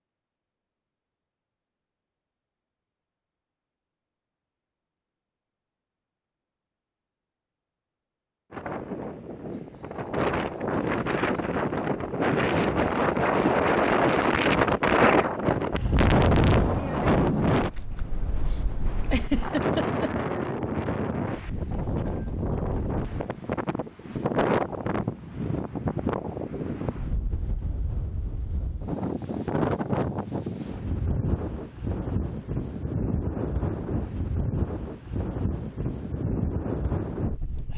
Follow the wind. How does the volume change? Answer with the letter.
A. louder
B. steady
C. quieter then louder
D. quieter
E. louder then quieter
D.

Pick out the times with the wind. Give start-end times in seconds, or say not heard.
8.5-37.7.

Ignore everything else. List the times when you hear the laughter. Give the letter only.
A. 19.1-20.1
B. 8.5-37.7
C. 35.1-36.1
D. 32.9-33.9
A.